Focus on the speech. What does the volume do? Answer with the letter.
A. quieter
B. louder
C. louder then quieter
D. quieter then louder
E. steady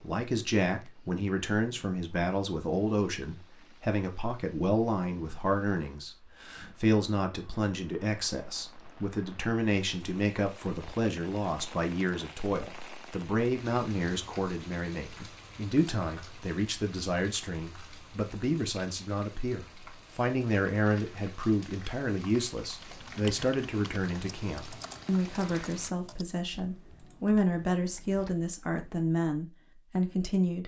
E.